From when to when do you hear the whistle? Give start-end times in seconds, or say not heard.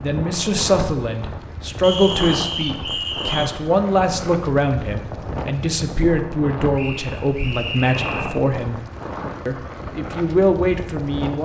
1.8-3.5, 6.8-8.4.